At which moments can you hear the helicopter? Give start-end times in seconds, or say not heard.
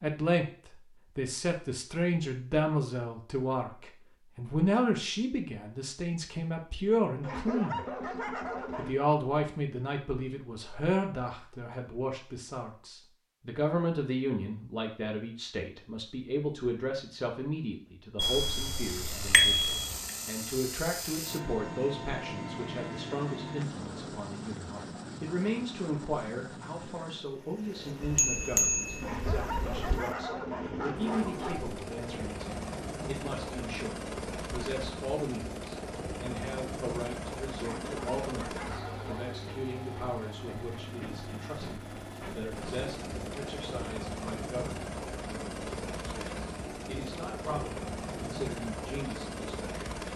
18.2-50.1.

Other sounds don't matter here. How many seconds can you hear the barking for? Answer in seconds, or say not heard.
6 s.